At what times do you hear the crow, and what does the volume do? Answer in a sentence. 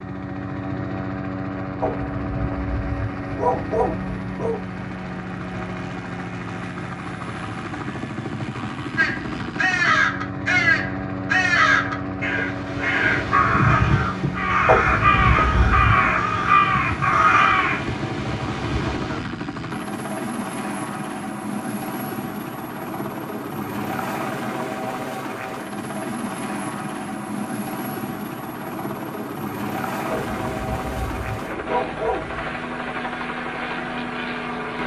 The crow can be heard from 8.9 to 19.2 s, at a steady volume.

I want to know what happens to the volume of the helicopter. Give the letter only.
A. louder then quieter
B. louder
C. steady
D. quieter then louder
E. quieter
C.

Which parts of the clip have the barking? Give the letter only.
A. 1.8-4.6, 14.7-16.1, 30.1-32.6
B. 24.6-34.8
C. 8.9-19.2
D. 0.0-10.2
A.